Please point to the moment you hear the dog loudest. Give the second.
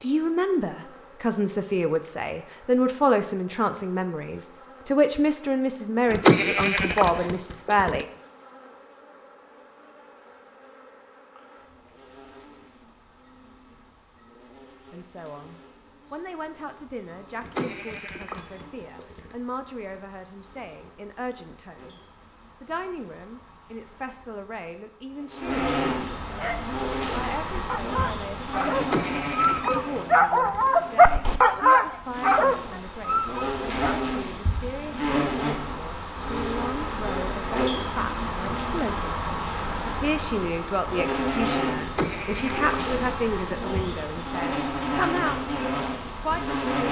31 s.